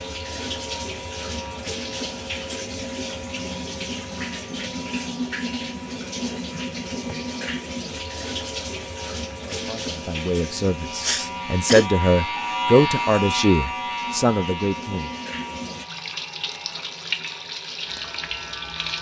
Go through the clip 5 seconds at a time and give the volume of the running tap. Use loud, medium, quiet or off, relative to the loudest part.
loud, loud, medium, loud.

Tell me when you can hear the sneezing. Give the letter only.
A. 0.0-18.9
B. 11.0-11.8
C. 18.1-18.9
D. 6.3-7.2
B.